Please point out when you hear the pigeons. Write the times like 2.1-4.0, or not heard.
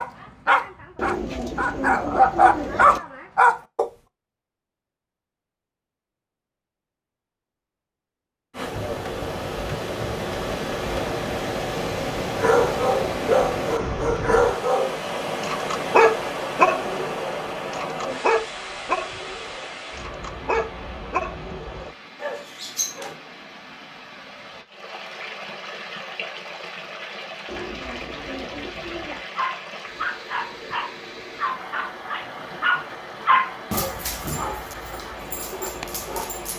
0.9-3.0, 27.4-29.2.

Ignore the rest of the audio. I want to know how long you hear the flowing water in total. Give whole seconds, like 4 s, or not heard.
28 s.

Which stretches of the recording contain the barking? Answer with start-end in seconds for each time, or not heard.
0.0-3.9, 12.3-23.1, 29.4-36.5.